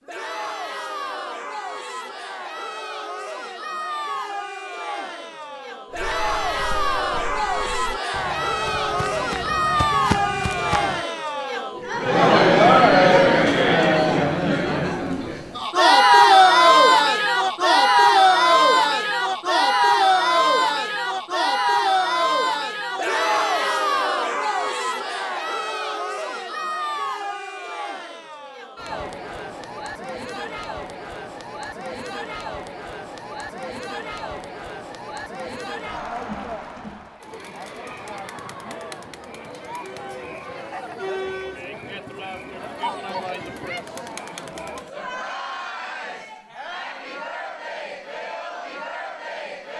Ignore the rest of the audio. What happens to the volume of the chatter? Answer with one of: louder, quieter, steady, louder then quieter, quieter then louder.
louder then quieter.